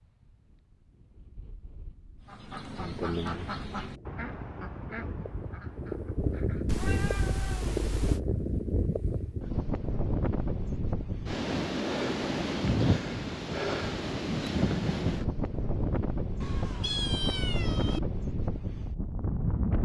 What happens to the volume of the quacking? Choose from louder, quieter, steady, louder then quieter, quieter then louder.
quieter.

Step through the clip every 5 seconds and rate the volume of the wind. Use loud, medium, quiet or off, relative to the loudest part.
quiet, loud, loud, loud.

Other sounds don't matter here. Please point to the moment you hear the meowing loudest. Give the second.
17 s.